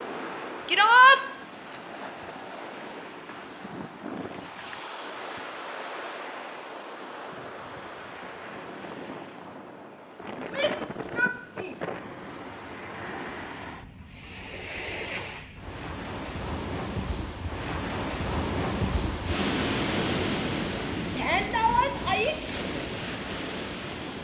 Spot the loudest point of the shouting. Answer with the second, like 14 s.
1 s.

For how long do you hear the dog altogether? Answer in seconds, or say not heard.
not heard.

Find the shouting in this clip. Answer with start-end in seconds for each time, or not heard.
0.7-1.2, 10.3-11.8, 21.1-22.4.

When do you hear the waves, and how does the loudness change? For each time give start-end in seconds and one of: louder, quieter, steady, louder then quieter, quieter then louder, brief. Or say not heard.
0.0-24.1 louder.